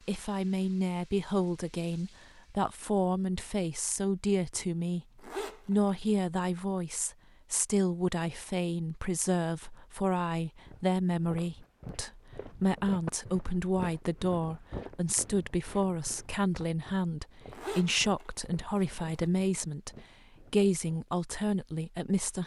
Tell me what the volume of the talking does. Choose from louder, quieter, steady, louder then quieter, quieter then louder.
steady.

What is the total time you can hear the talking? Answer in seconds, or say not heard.
22 s.